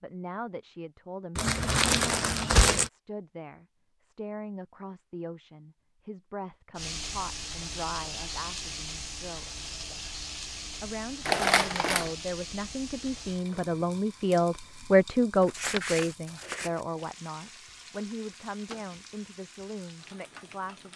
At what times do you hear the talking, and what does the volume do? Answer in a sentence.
The talking can be heard from 0.0 to 9.4 s, at a steady volume; and from 10.8 to 20.9 s, getting louder then quieter.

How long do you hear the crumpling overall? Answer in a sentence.
You can hear the crumpling for 4 seconds altogether.